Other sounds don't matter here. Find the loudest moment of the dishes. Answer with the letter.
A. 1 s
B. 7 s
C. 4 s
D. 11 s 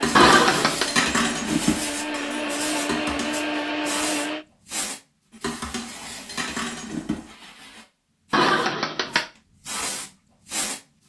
A.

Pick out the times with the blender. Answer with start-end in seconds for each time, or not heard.
0.0-4.5.